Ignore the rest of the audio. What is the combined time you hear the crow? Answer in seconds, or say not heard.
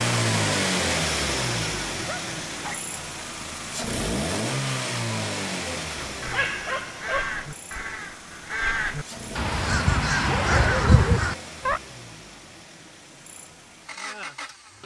6 s.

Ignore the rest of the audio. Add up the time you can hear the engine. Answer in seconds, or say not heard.
15 s.